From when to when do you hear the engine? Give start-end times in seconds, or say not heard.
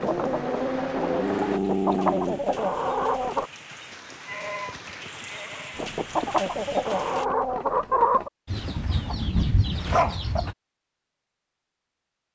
0.0-1.6.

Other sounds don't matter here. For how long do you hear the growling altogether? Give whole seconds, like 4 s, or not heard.
3 s.